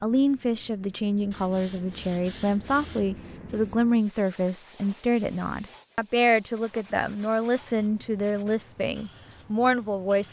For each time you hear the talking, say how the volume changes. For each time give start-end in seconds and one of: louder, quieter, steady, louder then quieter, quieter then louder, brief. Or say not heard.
0.0-10.2 steady.